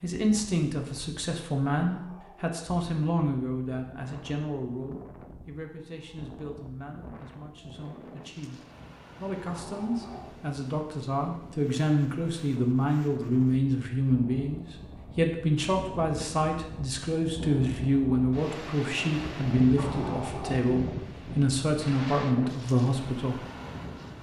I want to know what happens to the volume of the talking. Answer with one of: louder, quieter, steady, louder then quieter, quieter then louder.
quieter then louder.